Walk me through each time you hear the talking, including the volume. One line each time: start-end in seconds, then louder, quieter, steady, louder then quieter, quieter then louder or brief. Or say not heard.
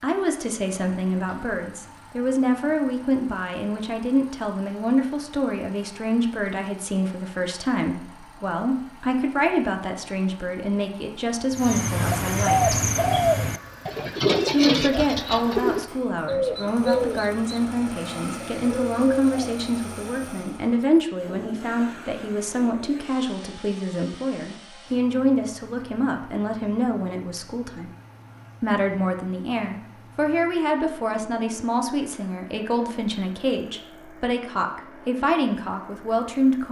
0.0-12.8 steady
14.5-27.9 steady
28.6-36.6 steady.